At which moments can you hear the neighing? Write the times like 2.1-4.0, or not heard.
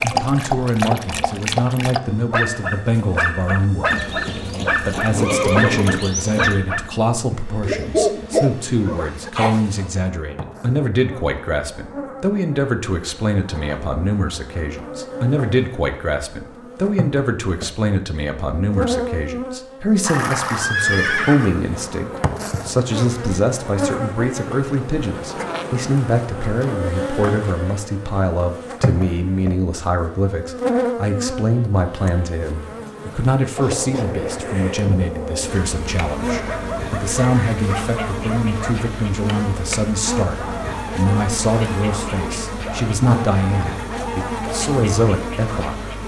3.9-6.6, 20.0-21.6, 36.2-37.6.